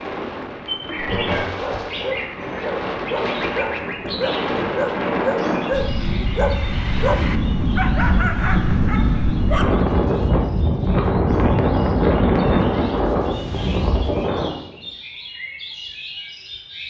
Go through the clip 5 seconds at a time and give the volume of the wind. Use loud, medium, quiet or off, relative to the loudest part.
medium, loud, loud, off.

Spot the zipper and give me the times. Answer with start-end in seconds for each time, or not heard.
not heard.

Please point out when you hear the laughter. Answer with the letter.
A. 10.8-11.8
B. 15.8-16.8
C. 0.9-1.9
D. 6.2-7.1
C.